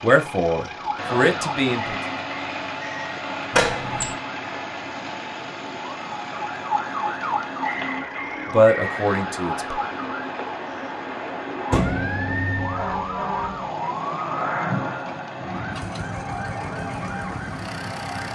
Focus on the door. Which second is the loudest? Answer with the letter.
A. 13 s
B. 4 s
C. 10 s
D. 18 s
B.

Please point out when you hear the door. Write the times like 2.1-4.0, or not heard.
3.5-4.2, 11.7-12.1.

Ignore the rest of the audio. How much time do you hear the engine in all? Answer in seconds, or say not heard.
18 s.